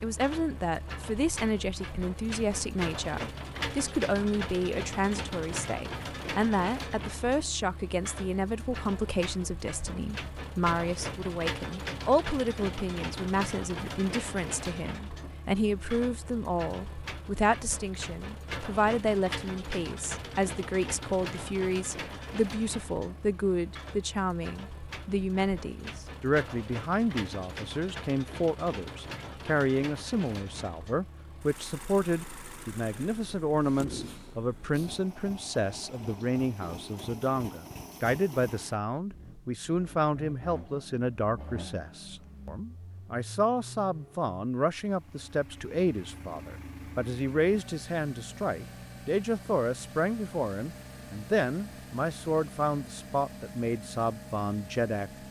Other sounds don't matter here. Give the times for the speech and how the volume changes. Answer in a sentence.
You can hear the speech from 0.0 to 55.1 s, at a steady volume.